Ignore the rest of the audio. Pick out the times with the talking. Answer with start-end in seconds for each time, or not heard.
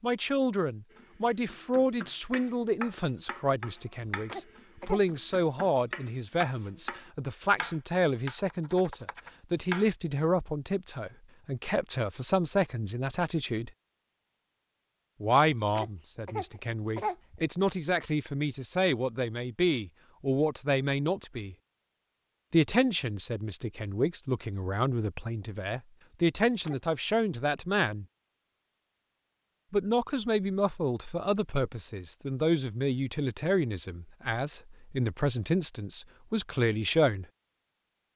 0.0-13.7, 15.2-21.6, 22.5-28.1, 29.7-37.2.